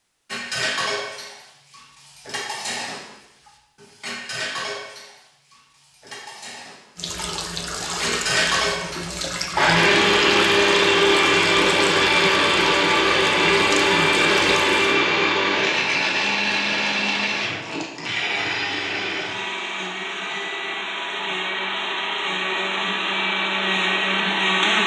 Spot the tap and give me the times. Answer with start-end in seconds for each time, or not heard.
7.0-15.0.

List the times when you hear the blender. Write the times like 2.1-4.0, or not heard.
9.5-24.8.